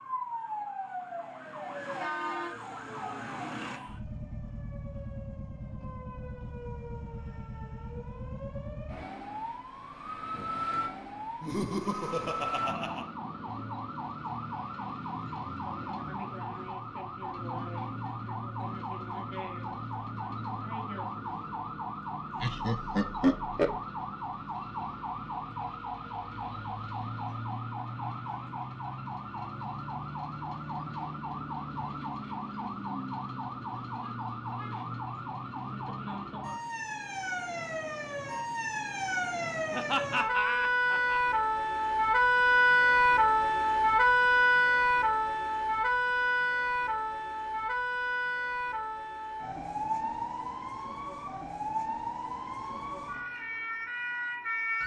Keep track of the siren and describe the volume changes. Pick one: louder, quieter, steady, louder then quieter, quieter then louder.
louder.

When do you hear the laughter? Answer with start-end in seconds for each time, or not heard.
11.4-13.1, 22.4-23.8, 39.7-41.4.